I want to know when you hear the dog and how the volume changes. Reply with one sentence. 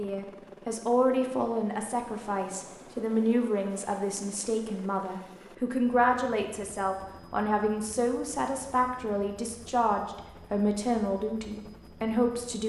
The dog can't be heard in this clip.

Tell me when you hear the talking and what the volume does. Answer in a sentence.
The talking can be heard from 0.0 to 12.6 s, at a steady volume.